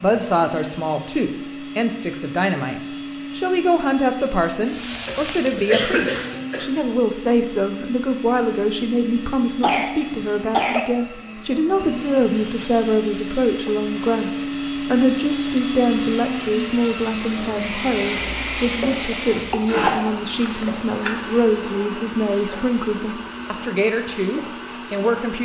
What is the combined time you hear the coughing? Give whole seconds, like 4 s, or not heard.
5 s.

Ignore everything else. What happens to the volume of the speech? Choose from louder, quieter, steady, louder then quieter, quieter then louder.
steady.